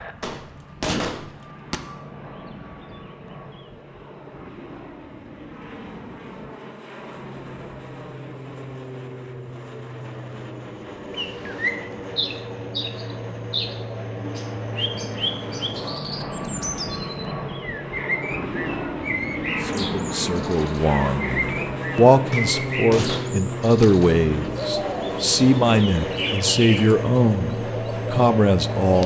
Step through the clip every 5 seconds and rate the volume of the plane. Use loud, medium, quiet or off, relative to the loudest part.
quiet, medium, medium, loud, loud, loud.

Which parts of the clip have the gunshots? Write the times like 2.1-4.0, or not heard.
0.2-1.8, 22.3-23.9.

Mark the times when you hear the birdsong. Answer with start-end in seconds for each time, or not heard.
11.1-29.0.